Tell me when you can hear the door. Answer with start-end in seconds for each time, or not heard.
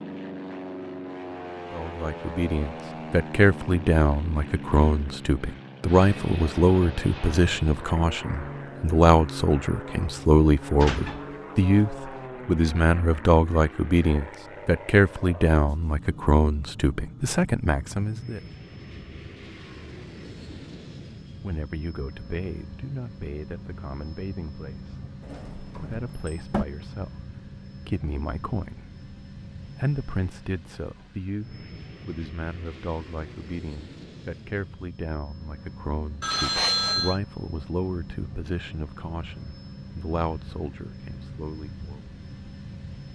10.8-11.9, 25.2-26.6.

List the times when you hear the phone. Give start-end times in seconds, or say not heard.
36.2-37.2.